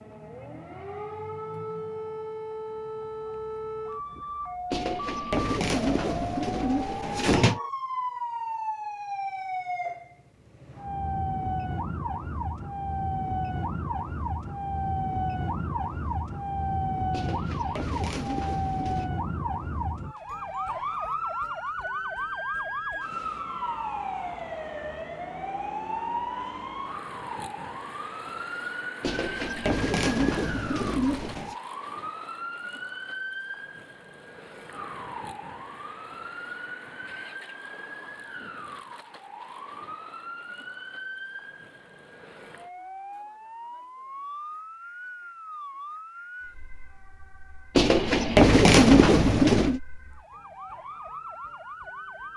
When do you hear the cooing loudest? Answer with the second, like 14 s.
49 s.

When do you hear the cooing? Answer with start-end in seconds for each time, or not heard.
4.7-7.6, 17.1-19.1, 29.0-31.6, 47.8-49.8.